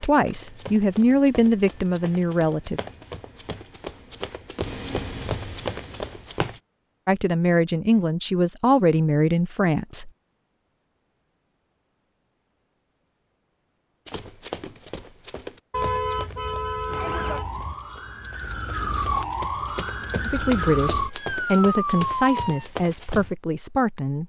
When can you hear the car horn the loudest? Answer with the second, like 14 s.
16 s.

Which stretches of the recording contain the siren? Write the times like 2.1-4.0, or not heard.
16.9-22.6.